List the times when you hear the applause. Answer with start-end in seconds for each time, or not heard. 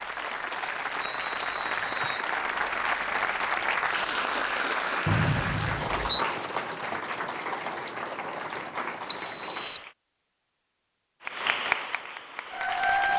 0.0-9.9, 11.2-13.1.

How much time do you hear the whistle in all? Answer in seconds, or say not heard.
3 s.